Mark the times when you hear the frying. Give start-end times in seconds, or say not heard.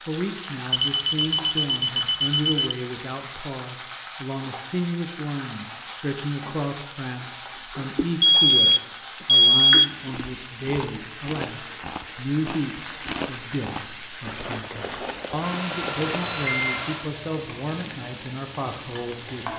0.0-19.5.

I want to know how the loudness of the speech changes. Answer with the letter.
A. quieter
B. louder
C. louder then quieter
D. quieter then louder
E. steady
E.